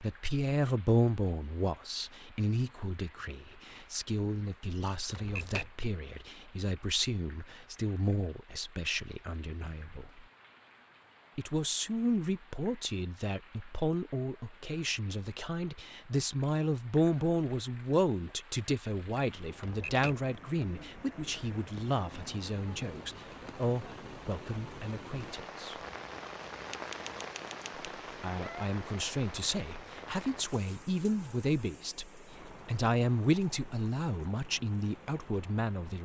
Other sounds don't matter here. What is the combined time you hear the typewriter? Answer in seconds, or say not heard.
3 s.